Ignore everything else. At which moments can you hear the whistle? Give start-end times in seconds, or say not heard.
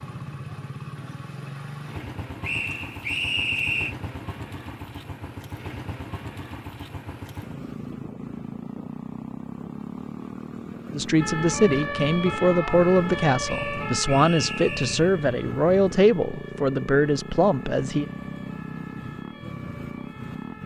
2.4-4.0, 13.4-15.1.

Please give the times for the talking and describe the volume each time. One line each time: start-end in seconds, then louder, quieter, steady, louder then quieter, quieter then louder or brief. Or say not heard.
10.9-18.1 steady.